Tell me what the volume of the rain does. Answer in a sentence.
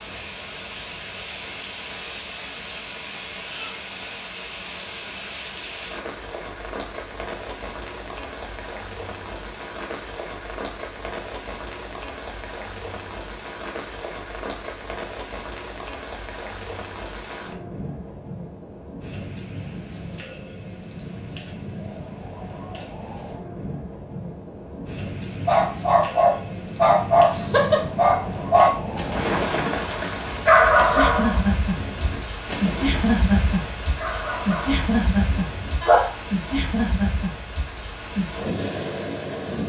The volume of the rain goes up.